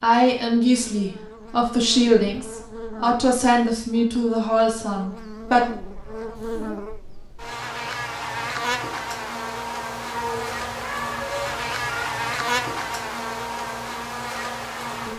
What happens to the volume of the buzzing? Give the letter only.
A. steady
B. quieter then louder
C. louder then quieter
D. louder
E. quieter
D.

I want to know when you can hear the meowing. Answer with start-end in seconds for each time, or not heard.
2.0-2.5, 5.8-6.8, 10.1-12.1.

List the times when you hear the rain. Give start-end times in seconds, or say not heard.
not heard.